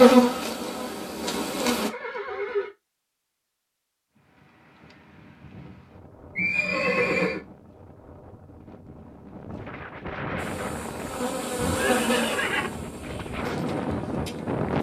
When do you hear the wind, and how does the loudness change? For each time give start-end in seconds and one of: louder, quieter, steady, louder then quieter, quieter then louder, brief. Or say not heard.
4.2-14.7 louder.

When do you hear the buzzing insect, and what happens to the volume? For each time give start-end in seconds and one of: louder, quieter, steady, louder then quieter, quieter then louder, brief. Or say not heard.
0.0-1.9 brief
10.3-14.7 louder then quieter.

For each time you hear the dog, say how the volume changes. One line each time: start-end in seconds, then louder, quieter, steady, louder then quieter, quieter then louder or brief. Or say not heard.
not heard.